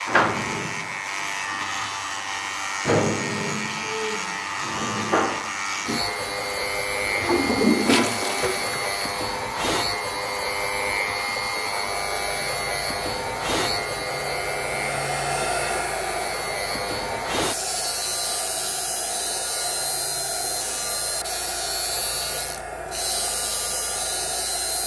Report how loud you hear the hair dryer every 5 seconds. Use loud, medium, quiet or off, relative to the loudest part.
medium, medium, loud, loud, loud.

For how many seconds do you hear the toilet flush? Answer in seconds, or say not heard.
2 s.